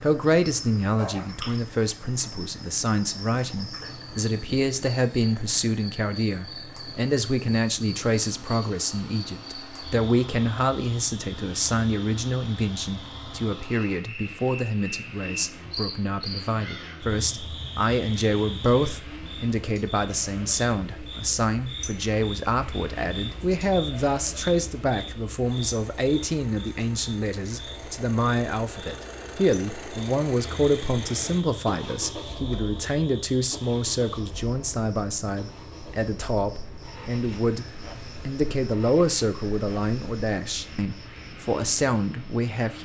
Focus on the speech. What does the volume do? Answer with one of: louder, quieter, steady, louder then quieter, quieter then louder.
steady.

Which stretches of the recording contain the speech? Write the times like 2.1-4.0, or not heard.
0.0-42.7.